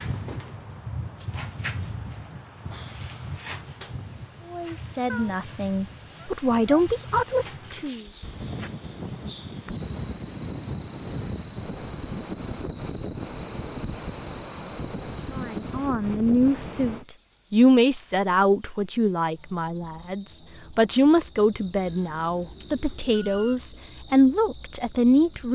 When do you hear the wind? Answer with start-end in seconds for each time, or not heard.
0.0-17.1.